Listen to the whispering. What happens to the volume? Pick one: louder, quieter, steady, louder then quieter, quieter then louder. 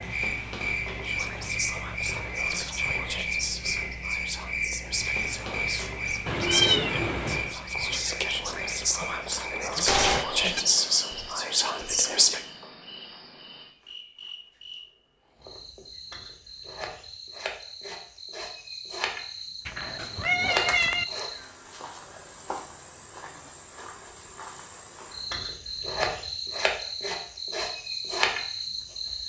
louder.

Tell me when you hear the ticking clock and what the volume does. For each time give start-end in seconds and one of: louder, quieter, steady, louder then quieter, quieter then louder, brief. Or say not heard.
not heard.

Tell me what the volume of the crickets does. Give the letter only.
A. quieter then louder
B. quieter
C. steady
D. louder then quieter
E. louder
A.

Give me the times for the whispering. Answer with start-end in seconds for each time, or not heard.
0.9-12.4.